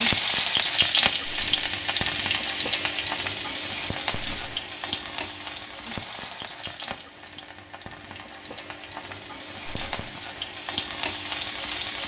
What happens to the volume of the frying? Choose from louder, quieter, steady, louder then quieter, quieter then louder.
quieter then louder.